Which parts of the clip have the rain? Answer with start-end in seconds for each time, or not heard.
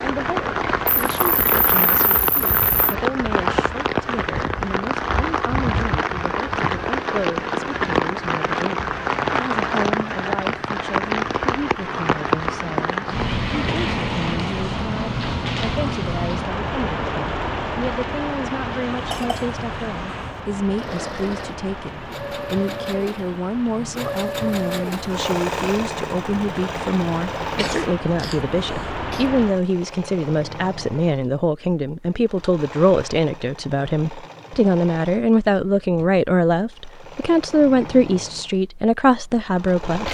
0.0-29.6.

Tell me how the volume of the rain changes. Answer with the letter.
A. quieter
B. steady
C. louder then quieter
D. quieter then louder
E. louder
A.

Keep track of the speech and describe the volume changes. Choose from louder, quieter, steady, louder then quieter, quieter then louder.
louder.